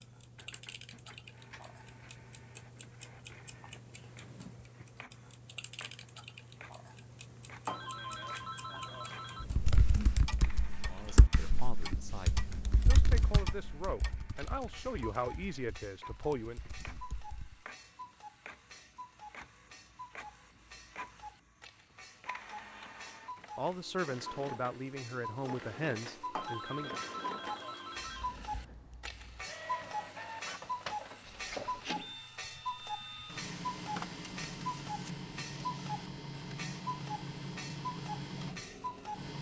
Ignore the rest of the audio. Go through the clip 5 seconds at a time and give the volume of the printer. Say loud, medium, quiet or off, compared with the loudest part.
quiet, quiet, quiet, quiet, medium, medium, loud, loud.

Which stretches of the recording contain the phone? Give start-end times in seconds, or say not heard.
7.7-9.4, 26.4-28.3.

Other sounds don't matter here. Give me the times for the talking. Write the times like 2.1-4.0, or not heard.
10.8-16.6, 23.6-27.0.